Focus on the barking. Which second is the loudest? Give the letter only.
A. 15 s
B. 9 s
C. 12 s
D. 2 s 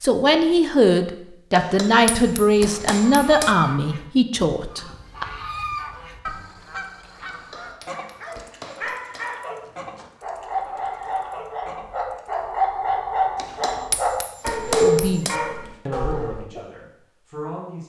A.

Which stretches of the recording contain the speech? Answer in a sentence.
The speech can be heard from 0.0 to 5.2 s and from 14.8 to 17.8 s.